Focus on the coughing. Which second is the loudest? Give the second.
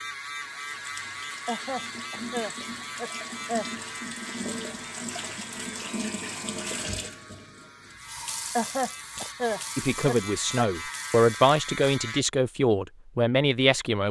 9 s.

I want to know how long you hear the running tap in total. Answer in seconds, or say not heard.
12 s.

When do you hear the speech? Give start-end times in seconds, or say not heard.
9.8-14.0.